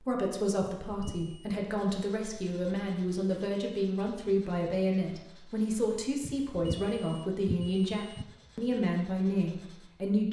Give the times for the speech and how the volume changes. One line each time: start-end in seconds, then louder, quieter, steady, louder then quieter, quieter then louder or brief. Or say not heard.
0.0-10.2 steady.